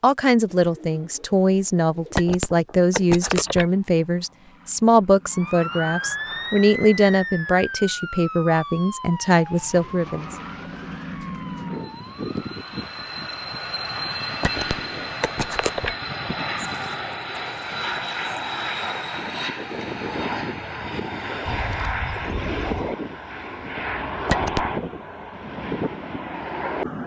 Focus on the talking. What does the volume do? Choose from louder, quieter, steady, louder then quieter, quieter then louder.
steady.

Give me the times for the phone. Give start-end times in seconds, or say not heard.
2.1-3.7, 14.4-15.9, 24.2-24.7.